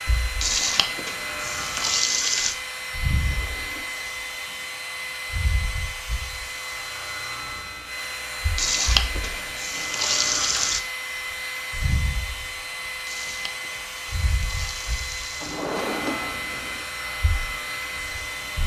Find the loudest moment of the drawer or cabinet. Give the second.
16 s.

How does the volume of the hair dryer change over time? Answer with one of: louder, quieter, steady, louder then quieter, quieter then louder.
steady.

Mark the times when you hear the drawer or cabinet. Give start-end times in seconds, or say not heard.
3.0-4.2, 9.8-10.5, 15.4-16.9.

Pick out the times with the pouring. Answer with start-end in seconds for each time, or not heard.
0.4-2.5, 8.6-10.8, 13.1-15.8.